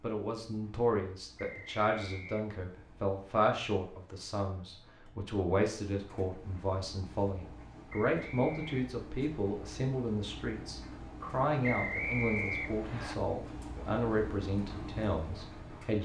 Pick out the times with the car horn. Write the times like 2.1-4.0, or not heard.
not heard.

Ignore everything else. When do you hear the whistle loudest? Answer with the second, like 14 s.
12 s.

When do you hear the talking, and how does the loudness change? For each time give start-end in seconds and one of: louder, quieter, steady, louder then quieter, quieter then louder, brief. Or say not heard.
0.0-15.9 steady.